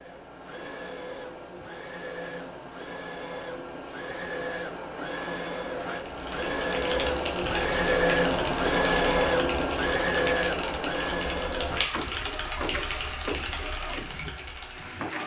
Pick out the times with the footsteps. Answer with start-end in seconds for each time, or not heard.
not heard.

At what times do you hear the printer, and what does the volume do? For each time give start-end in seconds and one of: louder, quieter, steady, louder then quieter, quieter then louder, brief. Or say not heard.
0.0-15.2 louder then quieter.